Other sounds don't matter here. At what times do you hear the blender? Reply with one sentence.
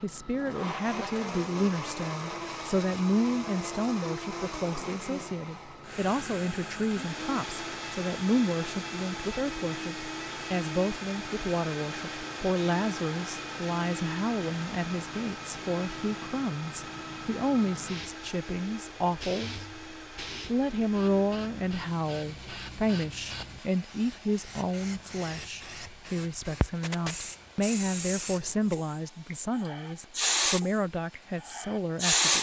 The blender can be heard from 0.0 to 32.1 s.